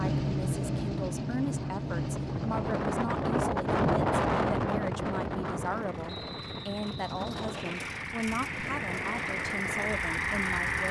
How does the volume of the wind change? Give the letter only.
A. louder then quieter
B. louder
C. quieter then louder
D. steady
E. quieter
E.